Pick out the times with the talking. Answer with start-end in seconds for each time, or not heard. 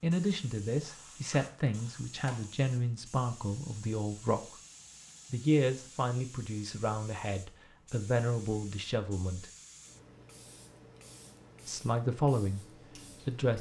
0.0-4.5, 5.3-9.5, 11.7-13.5.